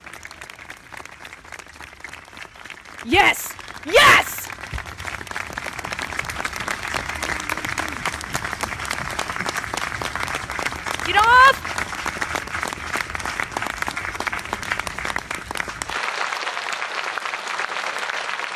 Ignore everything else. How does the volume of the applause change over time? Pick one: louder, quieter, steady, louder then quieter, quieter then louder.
louder.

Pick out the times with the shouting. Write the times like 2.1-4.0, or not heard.
3.0-4.5, 11.1-11.6.